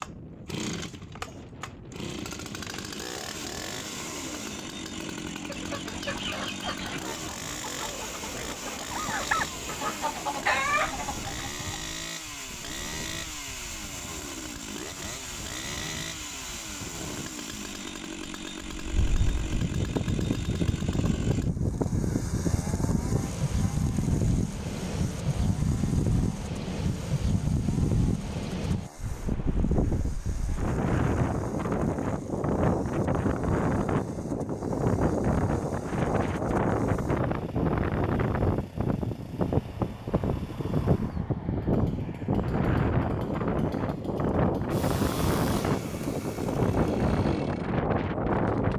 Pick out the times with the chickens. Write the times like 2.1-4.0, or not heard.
5.3-11.8.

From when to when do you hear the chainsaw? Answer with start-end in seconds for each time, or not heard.
0.0-48.7.